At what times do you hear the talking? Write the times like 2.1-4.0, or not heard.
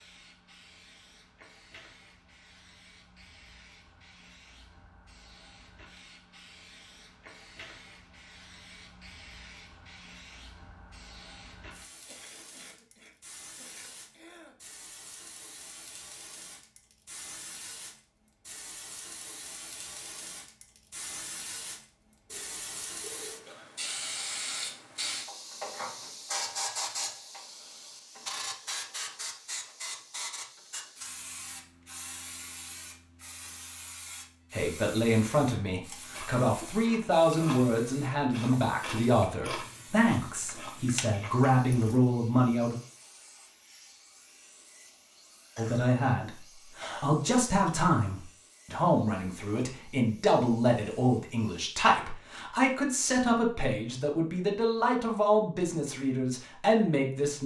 34.5-42.8, 45.5-57.4.